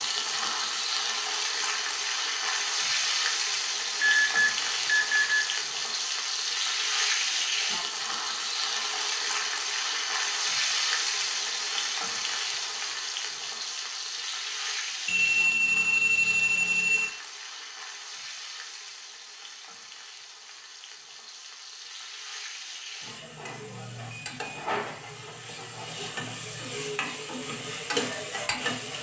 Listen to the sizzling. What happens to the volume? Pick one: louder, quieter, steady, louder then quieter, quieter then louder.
quieter then louder.